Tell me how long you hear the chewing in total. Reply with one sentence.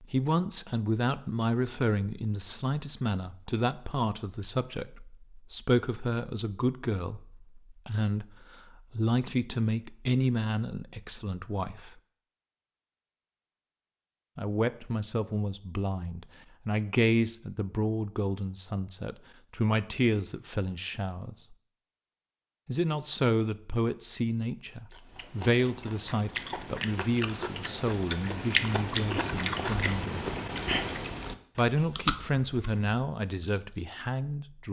The chewing can be heard for 9 seconds in total.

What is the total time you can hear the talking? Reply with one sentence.
You can hear the talking for 30 seconds altogether.